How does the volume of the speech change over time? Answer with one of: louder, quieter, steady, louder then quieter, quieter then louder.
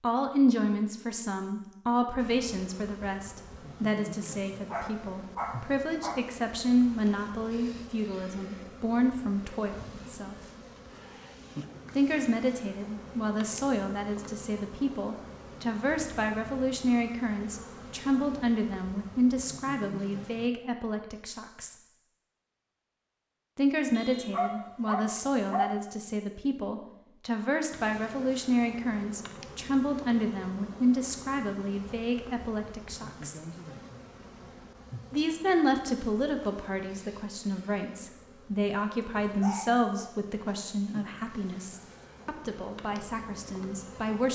steady.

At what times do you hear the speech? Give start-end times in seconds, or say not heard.
0.0-10.3, 11.9-21.8, 23.6-33.4, 35.1-44.3.